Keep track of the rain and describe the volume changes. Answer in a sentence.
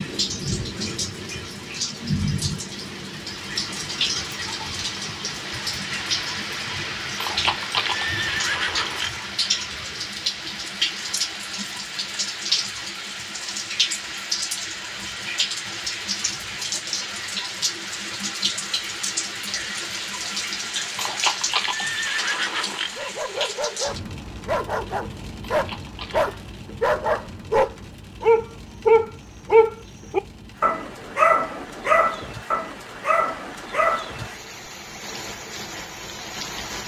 The loudness of the rain goes down.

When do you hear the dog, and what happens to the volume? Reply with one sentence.
You can hear the dog from 22.9 to 34.2 s, getting louder then quieter.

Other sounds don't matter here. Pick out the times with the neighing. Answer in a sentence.
The neighing can be heard from 7.2 to 9.2 s, from 20.9 to 22.9 s and from 25.5 to 26.4 s.